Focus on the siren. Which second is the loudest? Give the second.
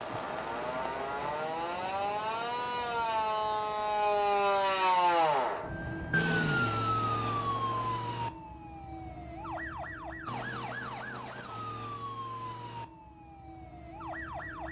5 s.